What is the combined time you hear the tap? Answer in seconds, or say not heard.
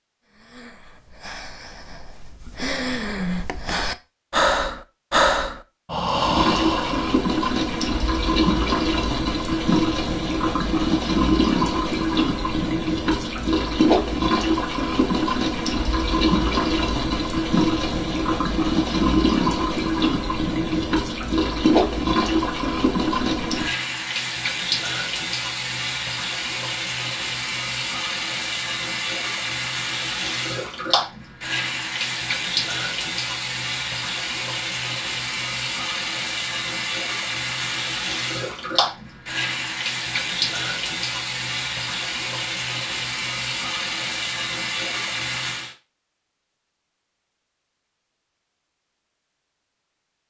40 s.